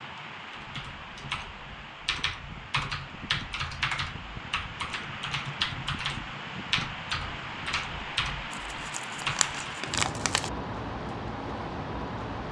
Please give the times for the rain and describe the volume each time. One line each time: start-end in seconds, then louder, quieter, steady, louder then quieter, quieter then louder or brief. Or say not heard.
0.0-12.4 louder.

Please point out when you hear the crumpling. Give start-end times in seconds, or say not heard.
8.5-10.5.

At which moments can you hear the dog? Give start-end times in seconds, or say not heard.
not heard.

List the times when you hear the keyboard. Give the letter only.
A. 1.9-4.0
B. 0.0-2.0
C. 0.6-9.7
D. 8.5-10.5
C.